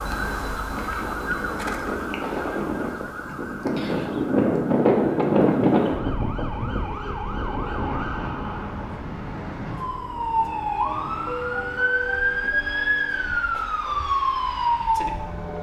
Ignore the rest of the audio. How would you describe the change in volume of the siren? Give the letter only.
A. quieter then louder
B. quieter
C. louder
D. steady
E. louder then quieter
A.